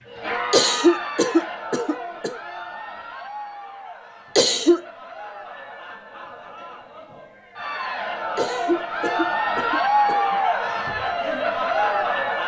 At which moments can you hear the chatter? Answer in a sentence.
The chatter can be heard from 0.0 to 12.4 s.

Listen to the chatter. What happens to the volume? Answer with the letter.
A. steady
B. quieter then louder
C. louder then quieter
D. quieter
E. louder
B.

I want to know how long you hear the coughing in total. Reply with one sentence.
You can hear the coughing for 4 seconds altogether.